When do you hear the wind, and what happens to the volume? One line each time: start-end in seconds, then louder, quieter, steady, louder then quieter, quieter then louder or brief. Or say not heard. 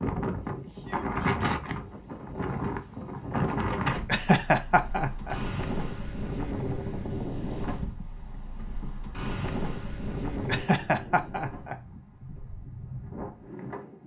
0.0-14.0 quieter.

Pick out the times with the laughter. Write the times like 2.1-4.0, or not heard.
4.0-5.3, 10.4-11.8.